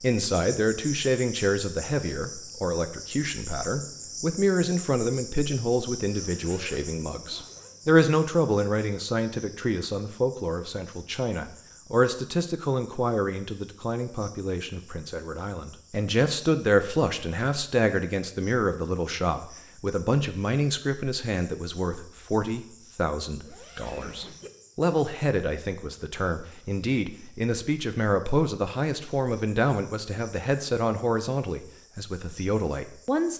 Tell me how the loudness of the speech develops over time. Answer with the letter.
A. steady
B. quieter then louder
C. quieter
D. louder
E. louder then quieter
A.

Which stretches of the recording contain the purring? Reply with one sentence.
The purring can't be heard in this clip.